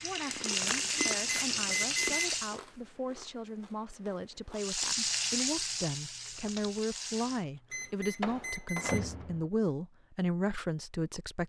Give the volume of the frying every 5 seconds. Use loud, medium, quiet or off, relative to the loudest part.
loud, loud, off.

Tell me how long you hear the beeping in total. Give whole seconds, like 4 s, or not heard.
3 s.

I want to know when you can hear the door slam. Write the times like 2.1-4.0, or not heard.
8.2-9.4.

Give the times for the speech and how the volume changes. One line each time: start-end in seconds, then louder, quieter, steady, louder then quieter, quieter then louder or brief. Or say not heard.
0.0-11.4 louder.